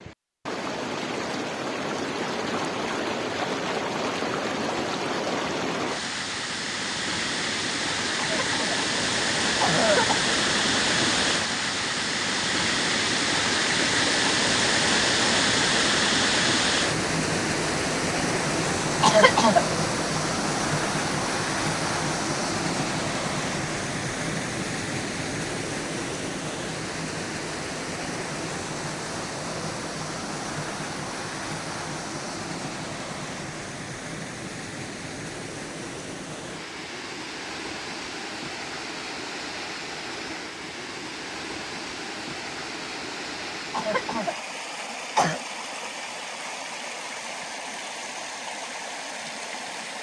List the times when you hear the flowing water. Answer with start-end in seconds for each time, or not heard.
0.0-49.9.